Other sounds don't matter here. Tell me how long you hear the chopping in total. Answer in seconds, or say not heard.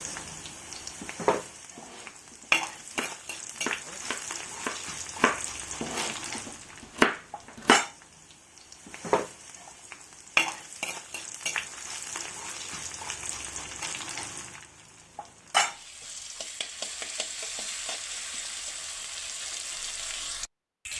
6 s.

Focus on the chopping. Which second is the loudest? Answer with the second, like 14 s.
7 s.